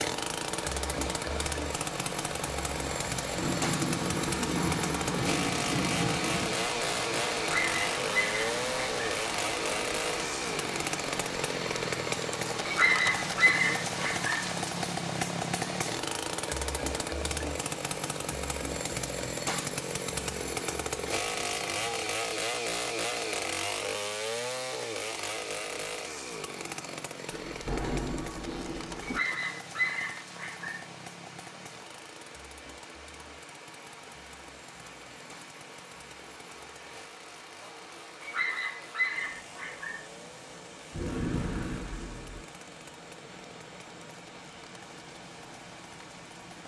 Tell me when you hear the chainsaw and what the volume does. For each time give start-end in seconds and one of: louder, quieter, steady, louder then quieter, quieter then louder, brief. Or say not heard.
0.0-46.6 quieter.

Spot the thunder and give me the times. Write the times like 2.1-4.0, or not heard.
3.4-6.6, 27.3-29.2, 40.9-42.5.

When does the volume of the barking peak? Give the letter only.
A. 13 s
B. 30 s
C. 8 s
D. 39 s
A.